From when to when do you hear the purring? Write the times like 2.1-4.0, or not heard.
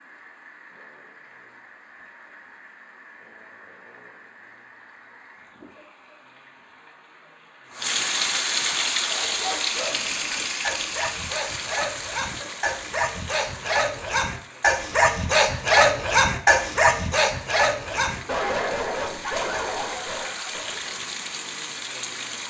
not heard.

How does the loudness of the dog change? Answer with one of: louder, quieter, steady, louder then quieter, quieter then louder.
louder then quieter.